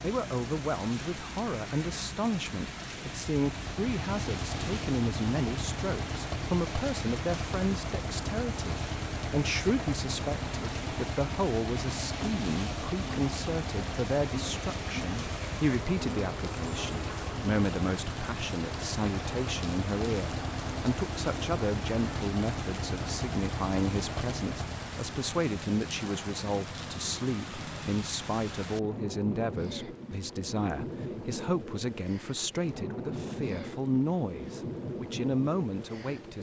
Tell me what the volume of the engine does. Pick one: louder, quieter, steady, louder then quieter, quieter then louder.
steady.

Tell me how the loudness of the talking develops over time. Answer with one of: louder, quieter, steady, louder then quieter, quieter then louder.
steady.